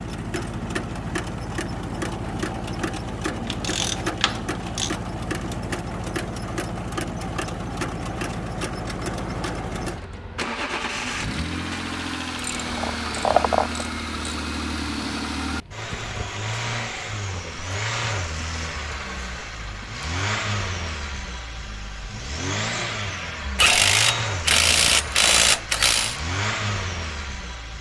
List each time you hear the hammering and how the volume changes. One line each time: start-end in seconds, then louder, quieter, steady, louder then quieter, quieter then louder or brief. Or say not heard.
not heard.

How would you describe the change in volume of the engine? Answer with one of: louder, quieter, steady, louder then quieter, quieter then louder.
steady.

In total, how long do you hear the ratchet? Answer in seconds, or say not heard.
6 s.